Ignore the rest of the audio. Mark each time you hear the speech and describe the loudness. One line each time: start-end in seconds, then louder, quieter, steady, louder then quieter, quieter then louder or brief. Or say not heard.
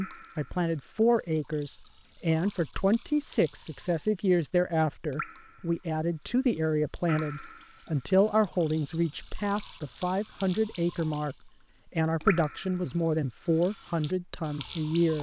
0.0-15.1 steady.